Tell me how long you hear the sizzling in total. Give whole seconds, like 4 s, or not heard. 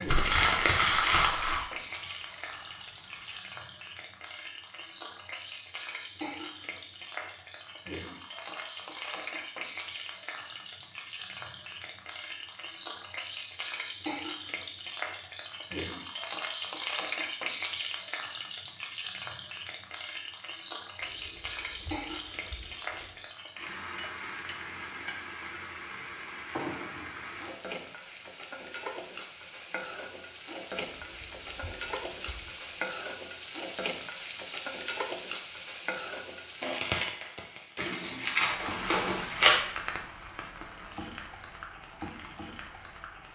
43 s.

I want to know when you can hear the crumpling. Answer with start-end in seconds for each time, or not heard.
0.1-1.6, 37.8-39.6.